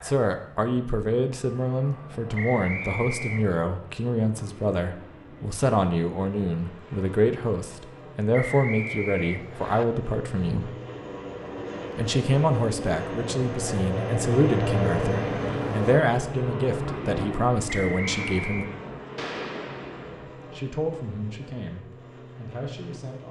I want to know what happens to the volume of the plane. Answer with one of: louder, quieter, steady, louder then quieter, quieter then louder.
louder then quieter.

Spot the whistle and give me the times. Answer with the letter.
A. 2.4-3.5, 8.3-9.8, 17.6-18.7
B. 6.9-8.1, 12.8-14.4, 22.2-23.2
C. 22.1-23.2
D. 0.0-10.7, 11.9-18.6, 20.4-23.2
A.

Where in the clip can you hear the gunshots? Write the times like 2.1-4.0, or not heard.
19.1-20.2.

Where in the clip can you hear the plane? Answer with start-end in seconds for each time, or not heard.
0.0-23.2.